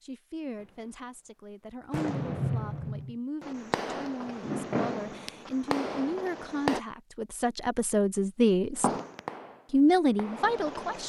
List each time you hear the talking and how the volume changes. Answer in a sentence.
You can hear the talking from 0.0 to 8.9 s, getting louder; and briefly from 9.7 to 11.0 s.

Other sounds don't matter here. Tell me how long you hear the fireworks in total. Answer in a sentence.
You can hear the fireworks for 7 seconds altogether.